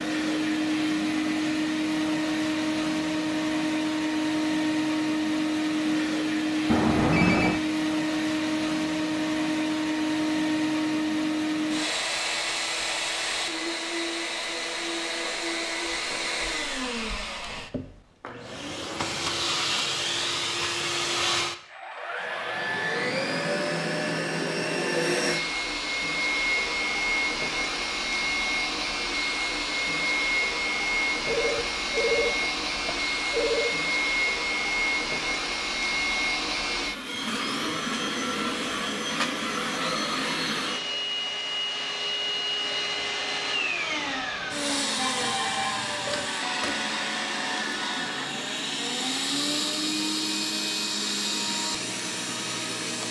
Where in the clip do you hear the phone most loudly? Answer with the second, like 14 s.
7 s.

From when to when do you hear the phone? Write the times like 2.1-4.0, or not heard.
6.7-7.6, 31.2-33.8, 45.0-46.3.